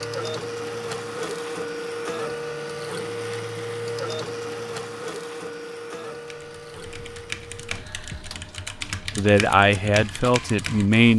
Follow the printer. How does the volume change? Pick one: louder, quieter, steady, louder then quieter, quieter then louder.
quieter.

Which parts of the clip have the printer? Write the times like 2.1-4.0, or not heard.
0.0-11.1.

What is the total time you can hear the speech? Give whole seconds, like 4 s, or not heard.
2 s.